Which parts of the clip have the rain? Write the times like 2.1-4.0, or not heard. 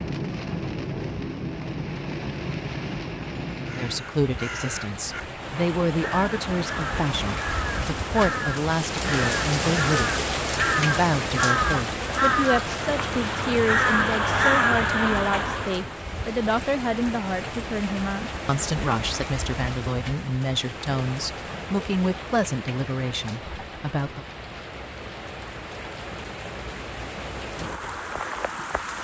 0.0-28.9.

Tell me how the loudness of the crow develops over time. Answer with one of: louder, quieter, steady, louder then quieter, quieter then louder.
louder.